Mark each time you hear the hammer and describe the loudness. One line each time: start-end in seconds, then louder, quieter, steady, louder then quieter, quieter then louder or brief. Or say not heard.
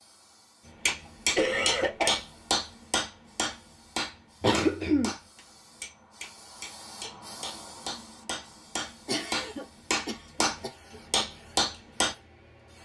0.8-12.2 quieter then louder.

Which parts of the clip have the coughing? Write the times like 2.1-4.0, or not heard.
1.4-2.2, 4.4-5.2, 9.1-11.2.